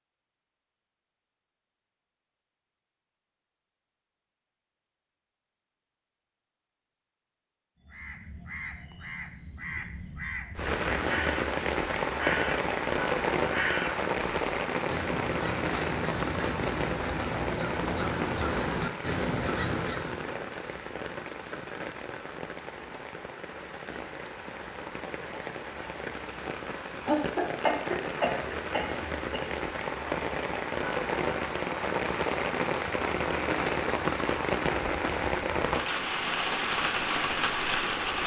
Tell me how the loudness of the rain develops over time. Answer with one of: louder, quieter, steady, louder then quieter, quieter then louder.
quieter then louder.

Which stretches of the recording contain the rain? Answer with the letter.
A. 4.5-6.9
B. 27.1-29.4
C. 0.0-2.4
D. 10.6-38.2
D.